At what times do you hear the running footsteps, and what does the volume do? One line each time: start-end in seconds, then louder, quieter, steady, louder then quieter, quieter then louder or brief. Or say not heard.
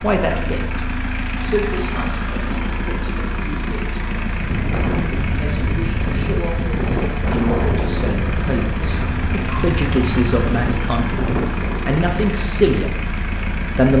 not heard.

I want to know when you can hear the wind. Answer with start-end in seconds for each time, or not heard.
4.3-13.7.